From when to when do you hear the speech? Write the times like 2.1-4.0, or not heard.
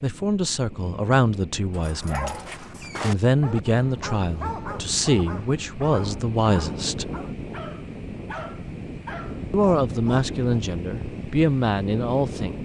0.0-2.4, 3.0-7.1, 9.5-12.6.